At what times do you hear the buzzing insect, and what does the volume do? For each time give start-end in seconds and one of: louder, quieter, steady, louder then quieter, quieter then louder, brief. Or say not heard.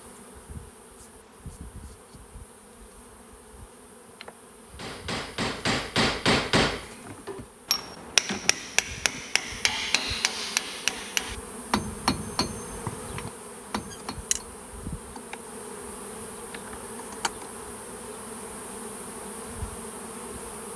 0.0-20.7 louder.